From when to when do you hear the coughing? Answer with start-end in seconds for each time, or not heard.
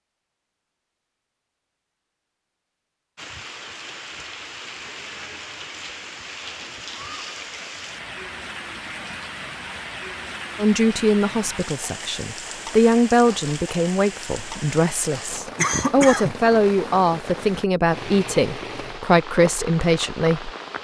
15.6-16.4.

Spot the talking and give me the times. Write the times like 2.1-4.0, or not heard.
10.6-20.5.